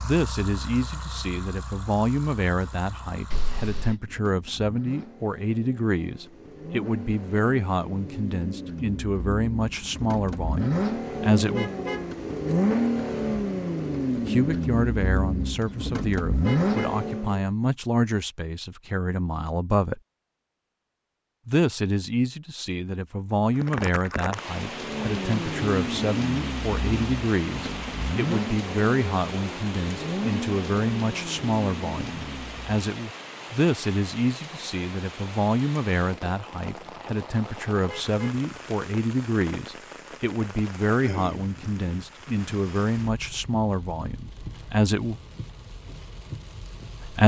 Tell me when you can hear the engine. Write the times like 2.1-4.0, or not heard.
0.0-17.4, 24.6-32.8.